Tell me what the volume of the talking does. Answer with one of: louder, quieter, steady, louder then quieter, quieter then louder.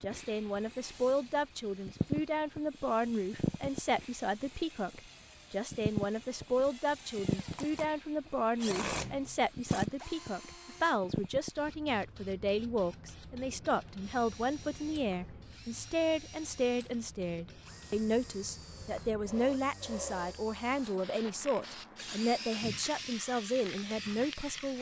steady.